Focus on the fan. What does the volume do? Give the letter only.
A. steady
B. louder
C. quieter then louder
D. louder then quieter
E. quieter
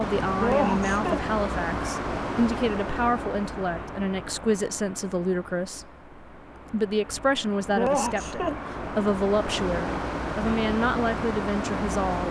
C.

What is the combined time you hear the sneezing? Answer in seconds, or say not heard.
2 s.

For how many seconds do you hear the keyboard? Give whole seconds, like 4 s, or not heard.
not heard.